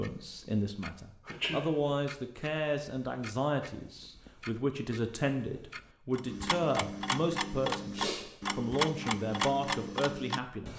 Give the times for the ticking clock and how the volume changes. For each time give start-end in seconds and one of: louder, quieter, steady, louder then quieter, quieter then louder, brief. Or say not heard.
0.0-10.7 louder.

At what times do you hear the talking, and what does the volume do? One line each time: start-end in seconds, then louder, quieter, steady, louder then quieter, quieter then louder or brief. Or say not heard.
0.0-10.7 steady.